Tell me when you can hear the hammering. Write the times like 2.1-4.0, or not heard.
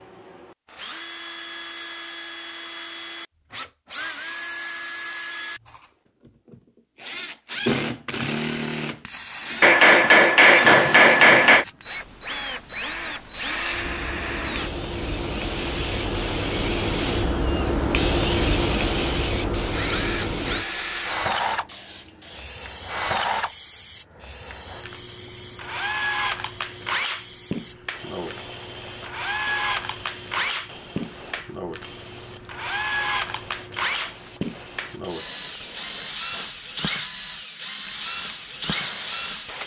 9.6-11.7.